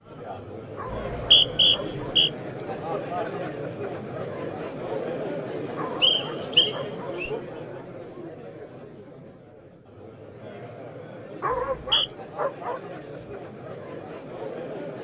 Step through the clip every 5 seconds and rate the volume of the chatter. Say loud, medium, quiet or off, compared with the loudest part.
loud, loud, medium.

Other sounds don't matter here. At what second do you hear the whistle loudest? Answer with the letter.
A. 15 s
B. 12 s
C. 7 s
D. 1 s
D.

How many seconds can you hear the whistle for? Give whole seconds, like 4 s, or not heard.
3 s.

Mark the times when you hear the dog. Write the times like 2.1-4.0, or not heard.
0.8-1.9, 5.8-7.2, 11.4-12.8.